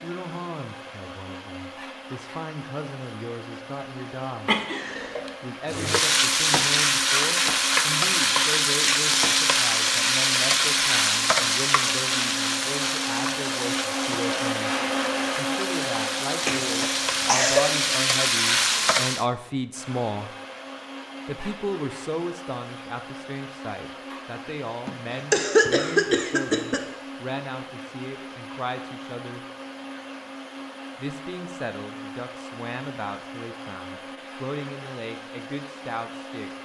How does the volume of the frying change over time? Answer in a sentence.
The loudness of the frying goes down, then up.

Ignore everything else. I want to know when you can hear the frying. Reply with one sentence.
You can hear the frying from 5.7 to 19.2 s.